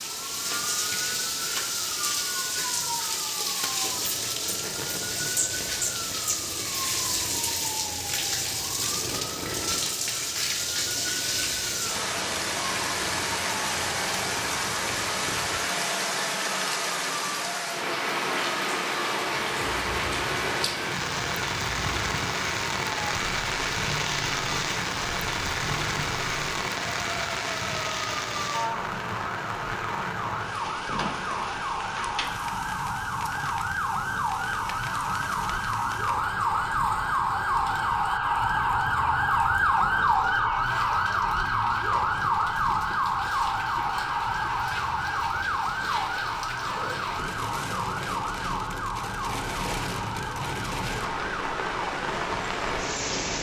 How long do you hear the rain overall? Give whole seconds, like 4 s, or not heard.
53 s.